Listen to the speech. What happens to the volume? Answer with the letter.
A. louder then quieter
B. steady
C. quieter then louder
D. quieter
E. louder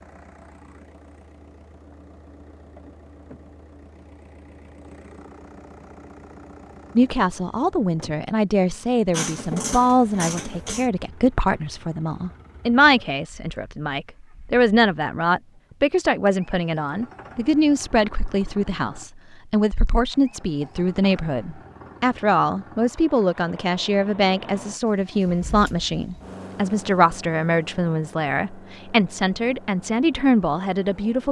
B.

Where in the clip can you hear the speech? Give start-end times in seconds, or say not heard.
7.0-31.2.